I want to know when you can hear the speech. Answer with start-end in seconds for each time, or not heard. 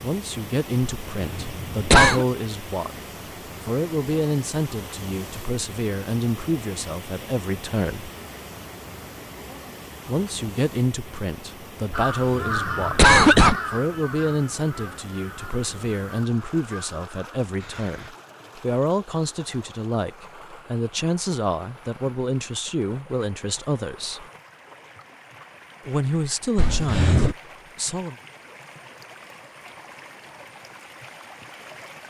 0.0-8.1, 10.1-24.2, 25.9-28.1.